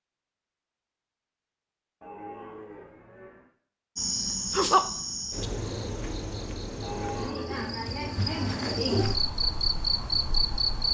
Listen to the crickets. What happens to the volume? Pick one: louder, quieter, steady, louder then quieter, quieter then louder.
quieter then louder.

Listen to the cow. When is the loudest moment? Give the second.
7 s.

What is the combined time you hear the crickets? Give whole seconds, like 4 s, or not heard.
7 s.